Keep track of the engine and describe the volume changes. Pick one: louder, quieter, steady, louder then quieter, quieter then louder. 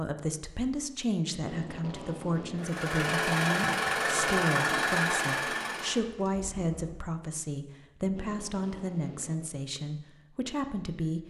quieter.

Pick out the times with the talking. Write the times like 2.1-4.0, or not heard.
0.0-11.2.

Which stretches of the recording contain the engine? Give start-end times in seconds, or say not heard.
2.5-7.0.